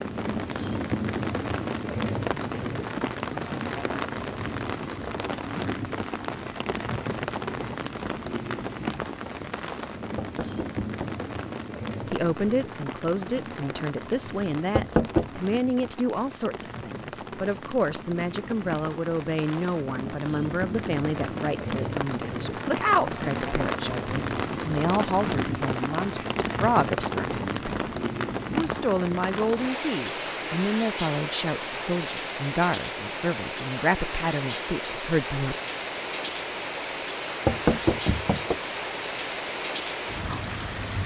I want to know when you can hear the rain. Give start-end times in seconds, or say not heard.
0.0-41.0.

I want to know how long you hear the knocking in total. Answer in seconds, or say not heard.
3 s.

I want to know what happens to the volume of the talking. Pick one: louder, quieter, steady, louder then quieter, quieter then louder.
steady.